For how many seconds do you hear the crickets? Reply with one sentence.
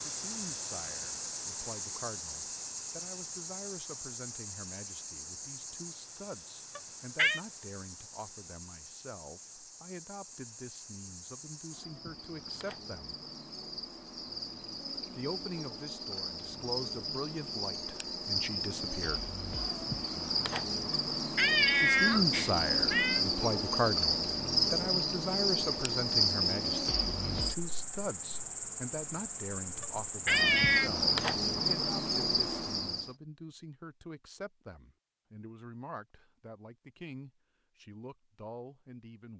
The crickets can be heard for 33 seconds in total.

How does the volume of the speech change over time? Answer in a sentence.
The volume of the speech goes up, then down.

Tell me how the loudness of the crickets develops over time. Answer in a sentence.
The volume of the crickets goes down, then up.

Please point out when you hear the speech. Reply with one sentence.
The speech can be heard from 0.1 to 13.2 s, from 15.2 to 19.4 s and from 21.8 to 39.3 s.